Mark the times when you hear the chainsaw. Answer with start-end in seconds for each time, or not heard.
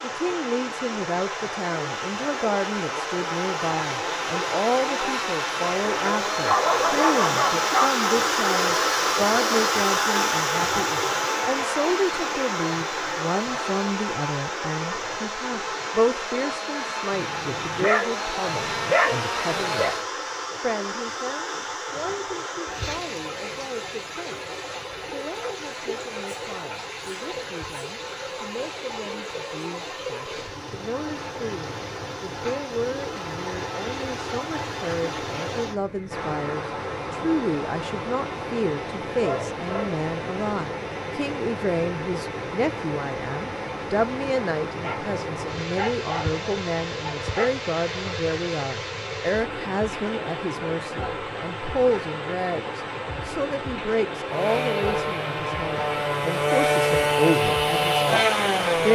0.0-20.1, 54.2-58.8.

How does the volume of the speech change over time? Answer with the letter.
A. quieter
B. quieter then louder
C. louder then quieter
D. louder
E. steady
B.